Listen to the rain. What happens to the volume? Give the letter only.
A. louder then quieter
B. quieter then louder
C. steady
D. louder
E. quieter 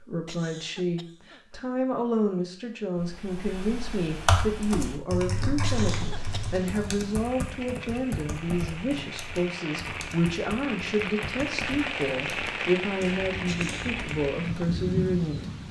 D.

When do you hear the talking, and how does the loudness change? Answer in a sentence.
The talking can be heard from 0.0 to 15.6 s, at a steady volume.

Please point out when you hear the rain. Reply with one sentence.
The rain can be heard from 5.8 to 15.6 s.